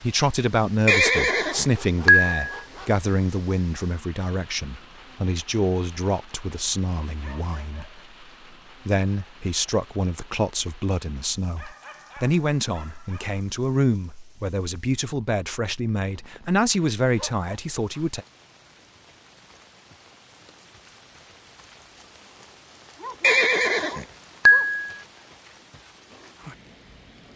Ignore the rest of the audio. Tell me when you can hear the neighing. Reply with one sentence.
The neighing can be heard from 0.8 to 2.4 s and from 23.2 to 24.8 s.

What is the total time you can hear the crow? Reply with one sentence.
You can't hear the crow here.